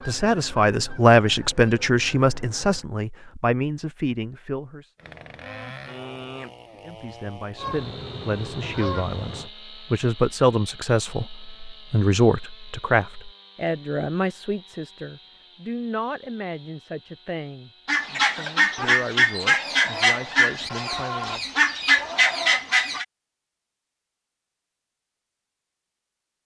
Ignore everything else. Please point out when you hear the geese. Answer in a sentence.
You can hear the geese from 0.0 to 2.9 s, from 7.5 to 9.5 s and from 17.9 to 23.1 s.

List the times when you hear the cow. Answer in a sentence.
The cow can't be heard in this clip.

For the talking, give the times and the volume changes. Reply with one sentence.
The talking can be heard from 0.1 to 4.9 s, getting quieter; and from 6.8 to 21.5 s, getting louder then quieter.